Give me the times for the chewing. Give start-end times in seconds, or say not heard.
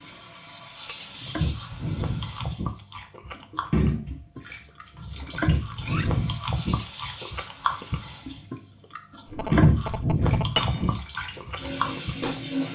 1.2-12.4.